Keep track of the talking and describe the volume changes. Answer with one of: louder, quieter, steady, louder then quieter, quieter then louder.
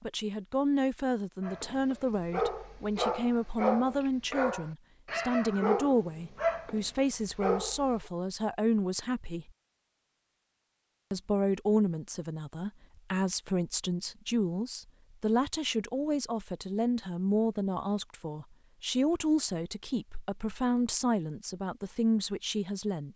steady.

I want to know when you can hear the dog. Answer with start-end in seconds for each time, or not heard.
1.4-8.1.